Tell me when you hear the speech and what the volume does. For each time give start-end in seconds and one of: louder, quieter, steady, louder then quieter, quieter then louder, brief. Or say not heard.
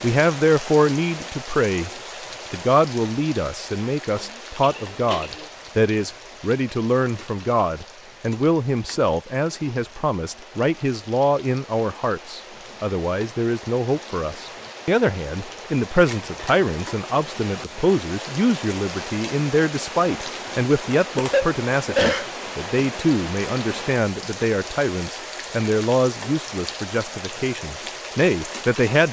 0.0-1.9 brief
2.5-29.0 steady.